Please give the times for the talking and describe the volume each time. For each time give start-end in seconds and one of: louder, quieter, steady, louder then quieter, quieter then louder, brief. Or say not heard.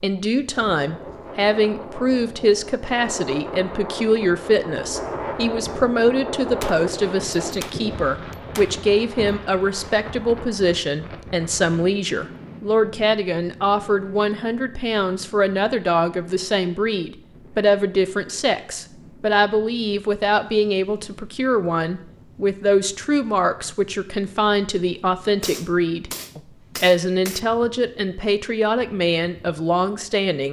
0.0-30.4 steady.